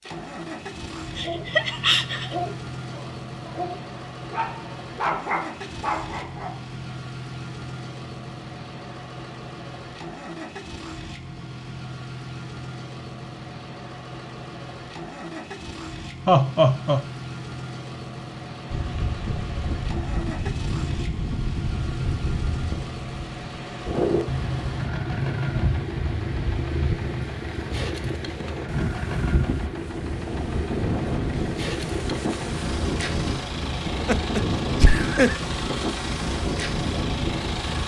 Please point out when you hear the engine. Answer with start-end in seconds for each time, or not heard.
0.0-37.8.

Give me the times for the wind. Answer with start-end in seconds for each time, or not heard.
18.7-37.8.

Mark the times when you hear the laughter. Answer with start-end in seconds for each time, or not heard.
1.1-2.4, 16.2-17.1, 33.9-35.4.